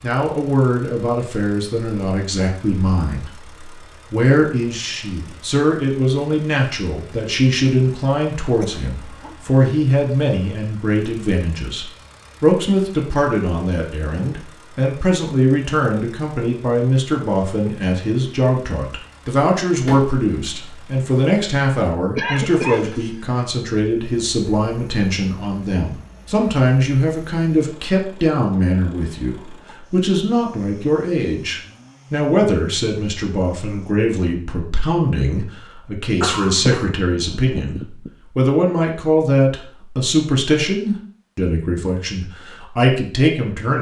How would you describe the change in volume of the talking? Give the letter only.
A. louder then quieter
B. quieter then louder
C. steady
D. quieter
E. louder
C.